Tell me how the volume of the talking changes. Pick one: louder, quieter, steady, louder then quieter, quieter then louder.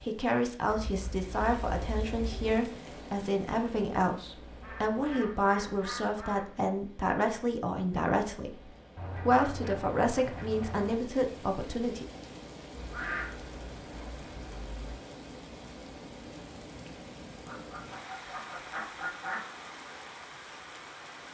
steady.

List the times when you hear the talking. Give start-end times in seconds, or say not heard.
0.0-12.1.